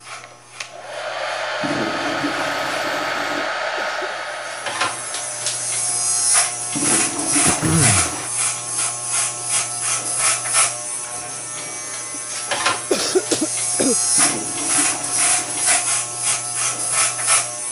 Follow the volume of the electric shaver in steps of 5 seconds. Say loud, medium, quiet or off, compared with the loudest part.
medium, loud, loud, loud.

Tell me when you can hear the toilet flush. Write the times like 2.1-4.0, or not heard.
1.6-3.5, 6.7-8.3, 14.2-15.9.